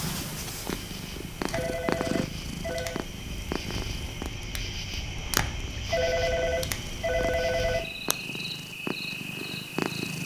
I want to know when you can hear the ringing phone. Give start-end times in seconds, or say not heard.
1.4-3.0, 5.8-8.2.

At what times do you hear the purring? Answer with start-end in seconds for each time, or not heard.
0.0-10.2.